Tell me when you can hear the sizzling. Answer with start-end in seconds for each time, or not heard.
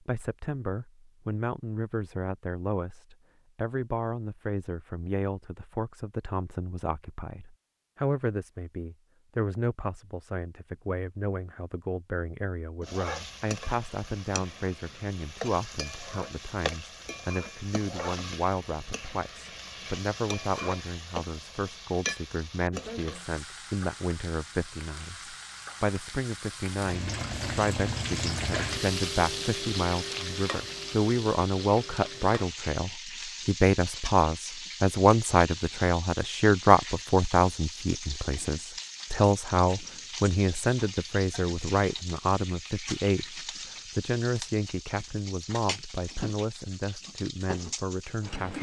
12.8-48.5.